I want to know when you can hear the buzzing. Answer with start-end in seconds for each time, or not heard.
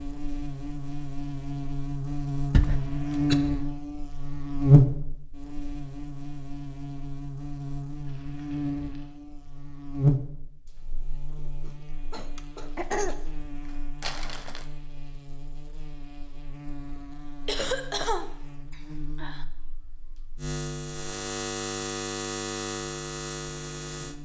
0.0-24.1.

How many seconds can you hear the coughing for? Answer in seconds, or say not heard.
4 s.